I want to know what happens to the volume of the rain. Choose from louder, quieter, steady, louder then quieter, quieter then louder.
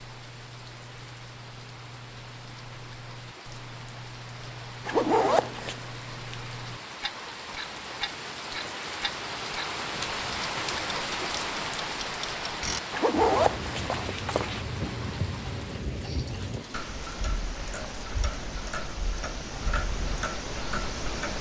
louder then quieter.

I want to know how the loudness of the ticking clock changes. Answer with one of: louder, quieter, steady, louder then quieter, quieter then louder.
louder.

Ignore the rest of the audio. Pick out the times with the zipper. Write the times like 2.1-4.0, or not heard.
4.8-5.8, 12.9-14.7.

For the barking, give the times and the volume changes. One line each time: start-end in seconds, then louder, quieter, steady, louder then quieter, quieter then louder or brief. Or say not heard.
not heard.